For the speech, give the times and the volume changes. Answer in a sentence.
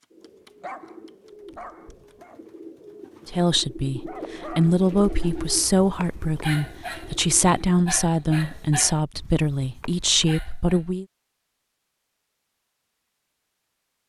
You can hear the speech from 3.2 to 11.1 s, at a steady volume.